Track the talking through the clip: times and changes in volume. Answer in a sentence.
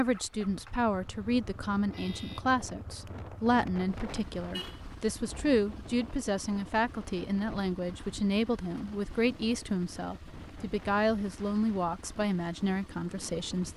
The talking can be heard from 0.0 to 13.7 s, at a steady volume.